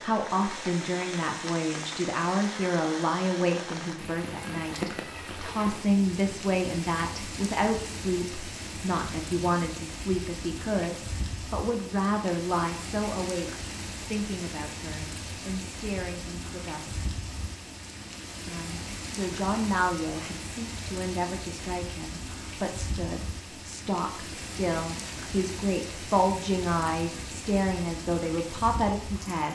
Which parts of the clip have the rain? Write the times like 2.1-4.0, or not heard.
0.0-29.5.